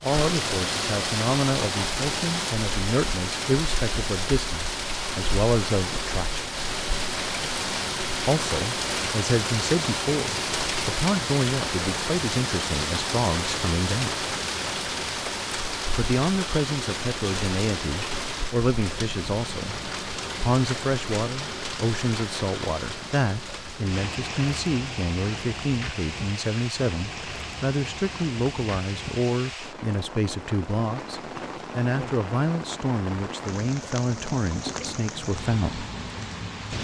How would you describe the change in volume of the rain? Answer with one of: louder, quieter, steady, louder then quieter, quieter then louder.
quieter.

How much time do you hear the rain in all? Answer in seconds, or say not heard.
37 s.